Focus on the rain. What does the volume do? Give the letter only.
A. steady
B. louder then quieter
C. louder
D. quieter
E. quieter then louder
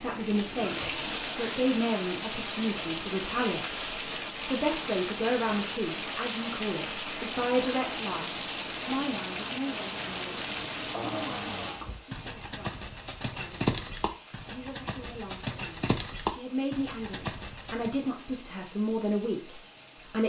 D.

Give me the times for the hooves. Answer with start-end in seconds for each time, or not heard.
11.8-17.9.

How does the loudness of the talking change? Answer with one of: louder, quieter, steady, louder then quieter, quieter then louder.
quieter then louder.